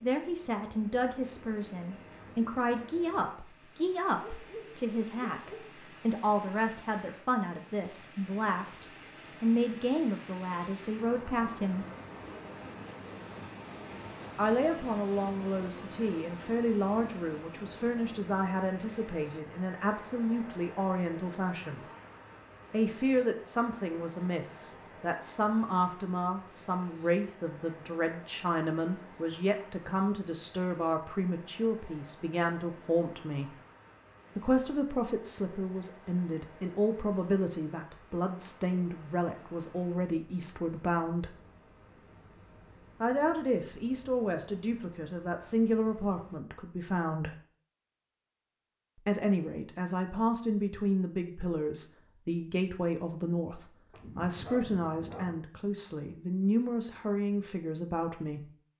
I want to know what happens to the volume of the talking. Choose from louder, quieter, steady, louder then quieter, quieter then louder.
steady.